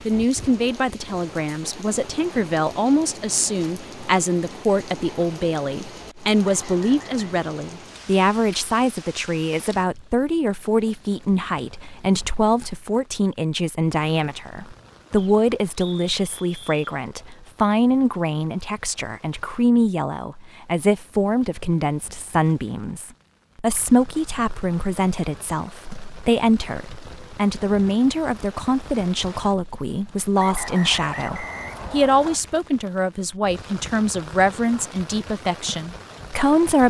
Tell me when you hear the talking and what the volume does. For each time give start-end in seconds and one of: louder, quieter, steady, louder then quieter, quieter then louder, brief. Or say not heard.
0.1-36.8 steady.